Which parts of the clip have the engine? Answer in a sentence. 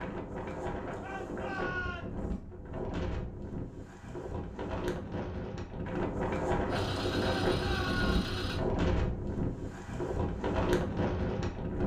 The engine can be heard from 6.7 to 8.6 s.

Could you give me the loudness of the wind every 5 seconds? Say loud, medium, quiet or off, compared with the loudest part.
medium, loud, loud.